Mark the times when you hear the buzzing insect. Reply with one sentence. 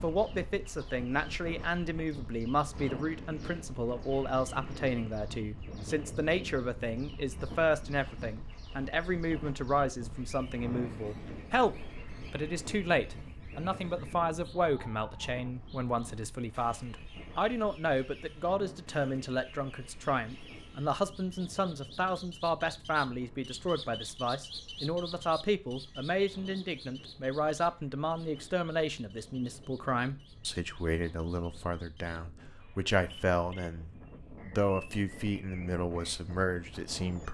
The buzzing insect can't be heard in this clip.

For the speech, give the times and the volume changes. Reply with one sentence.
You can hear the speech from 0.0 to 37.2 s, at a steady volume.